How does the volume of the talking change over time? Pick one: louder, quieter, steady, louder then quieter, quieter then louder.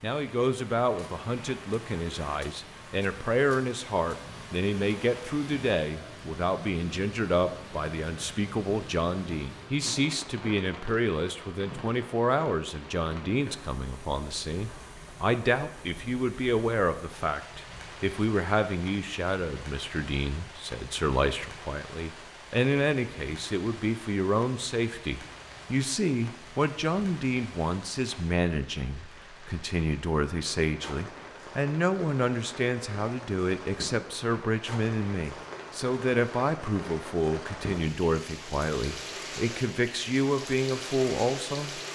steady.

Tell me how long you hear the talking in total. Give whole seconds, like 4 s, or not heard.
42 s.